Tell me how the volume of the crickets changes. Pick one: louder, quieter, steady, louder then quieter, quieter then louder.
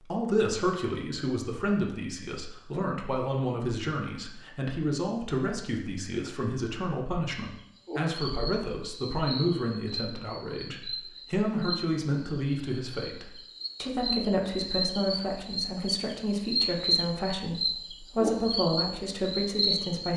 louder.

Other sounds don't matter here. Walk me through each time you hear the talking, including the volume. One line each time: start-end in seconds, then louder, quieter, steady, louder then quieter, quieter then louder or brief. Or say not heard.
0.0-20.1 steady.